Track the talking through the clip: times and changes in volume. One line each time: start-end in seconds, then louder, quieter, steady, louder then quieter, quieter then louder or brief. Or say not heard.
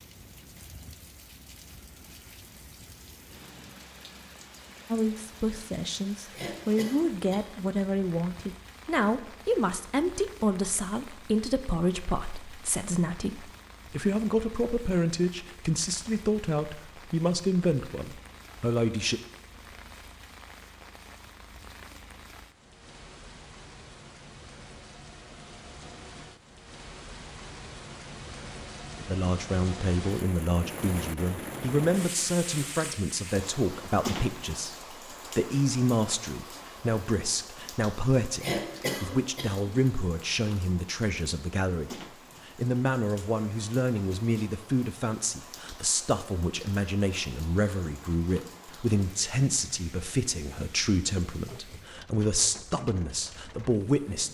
4.9-19.2 steady
29.0-54.2 steady.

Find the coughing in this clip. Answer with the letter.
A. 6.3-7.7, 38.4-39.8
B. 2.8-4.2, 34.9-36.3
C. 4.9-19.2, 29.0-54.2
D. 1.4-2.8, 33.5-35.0
A.